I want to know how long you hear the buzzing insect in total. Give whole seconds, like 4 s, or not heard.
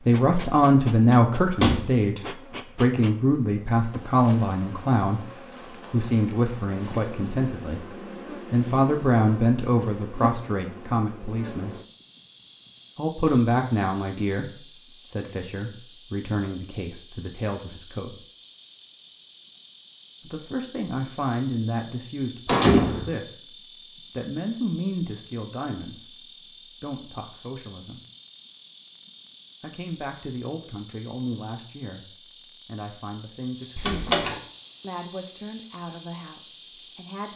37 s.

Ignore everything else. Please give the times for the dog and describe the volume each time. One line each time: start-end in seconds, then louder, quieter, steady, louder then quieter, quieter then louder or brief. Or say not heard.
not heard.